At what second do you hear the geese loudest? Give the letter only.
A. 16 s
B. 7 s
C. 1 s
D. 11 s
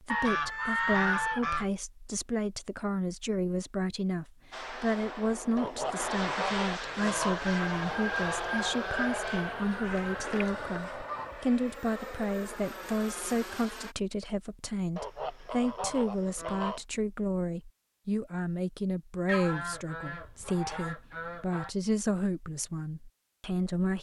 C.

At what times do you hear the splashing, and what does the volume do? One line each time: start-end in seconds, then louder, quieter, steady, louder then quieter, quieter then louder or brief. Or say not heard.
not heard.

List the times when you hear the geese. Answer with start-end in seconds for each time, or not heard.
0.1-1.6, 5.5-7.5, 9.8-11.3, 14.9-16.9, 19.2-21.7.